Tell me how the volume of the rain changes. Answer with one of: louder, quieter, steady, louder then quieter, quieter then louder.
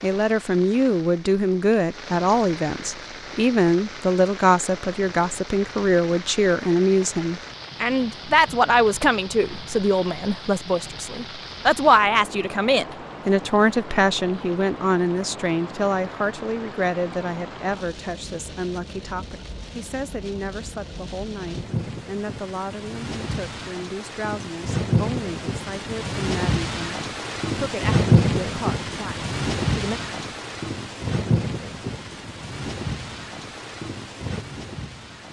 louder.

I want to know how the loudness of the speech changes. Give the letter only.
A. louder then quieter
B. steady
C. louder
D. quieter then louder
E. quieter
E.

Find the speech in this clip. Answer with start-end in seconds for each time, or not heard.
0.0-30.0.